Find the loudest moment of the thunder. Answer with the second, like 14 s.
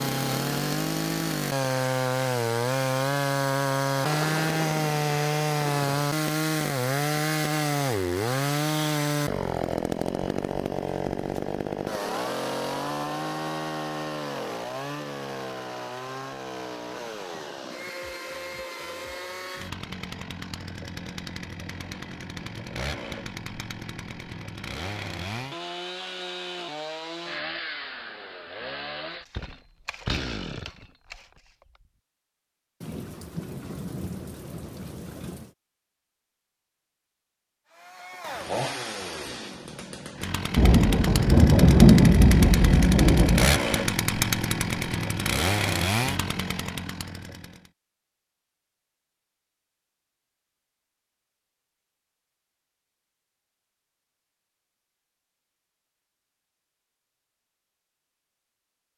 42 s.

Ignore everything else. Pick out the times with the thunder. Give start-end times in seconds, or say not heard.
4.0-6.0, 32.8-35.5, 40.5-43.5.